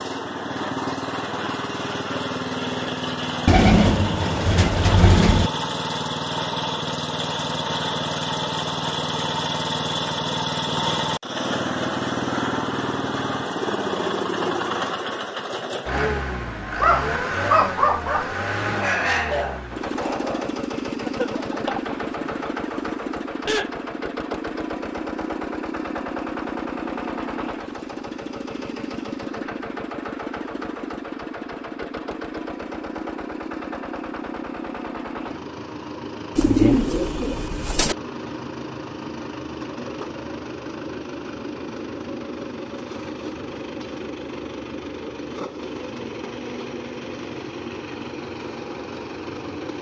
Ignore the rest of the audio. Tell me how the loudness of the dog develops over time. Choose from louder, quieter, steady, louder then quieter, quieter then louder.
quieter.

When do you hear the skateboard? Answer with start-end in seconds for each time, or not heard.
not heard.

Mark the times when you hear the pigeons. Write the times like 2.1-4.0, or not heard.
3.5-5.5, 36.4-38.0.